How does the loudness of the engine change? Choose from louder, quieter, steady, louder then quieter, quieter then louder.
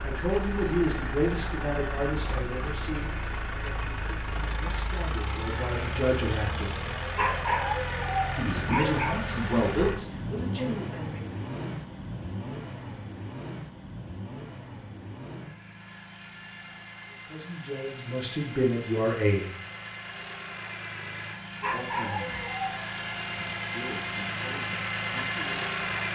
quieter then louder.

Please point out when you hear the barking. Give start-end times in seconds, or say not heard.
7.2-9.1, 21.6-22.9.